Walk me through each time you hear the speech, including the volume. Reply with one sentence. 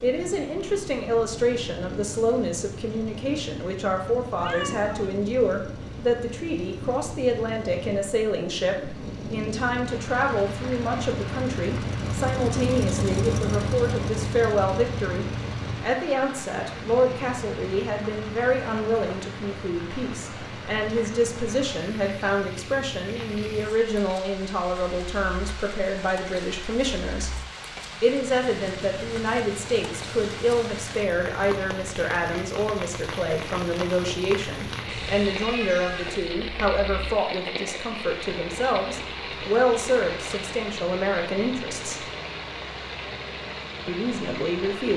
You can hear the speech from 0.0 to 27.3 s, at a steady volume; from 28.0 to 42.0 s, at a steady volume; and briefly from 43.9 to 44.9 s.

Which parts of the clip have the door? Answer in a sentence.
The door can't be heard in this clip.